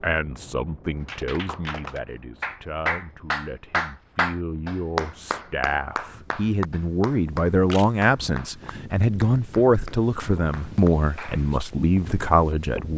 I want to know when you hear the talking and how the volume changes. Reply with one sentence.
You can hear the talking from 0.0 to 12.9 s, getting louder.